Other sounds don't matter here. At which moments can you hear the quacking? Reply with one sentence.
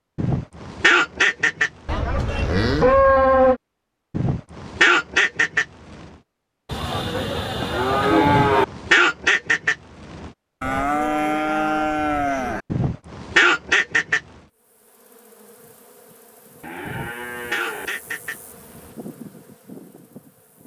The quacking can be heard from 0.1 to 1.7 s, from 4.1 to 6.0 s, from 8.2 to 10.3 s, from 12.7 to 14.2 s and from 16.9 to 18.9 s.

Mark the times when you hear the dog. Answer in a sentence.
The dog can't be heard in this clip.